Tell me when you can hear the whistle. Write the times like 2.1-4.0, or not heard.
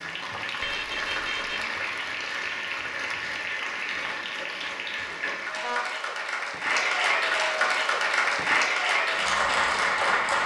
not heard.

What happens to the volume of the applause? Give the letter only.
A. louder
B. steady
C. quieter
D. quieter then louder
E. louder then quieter
A.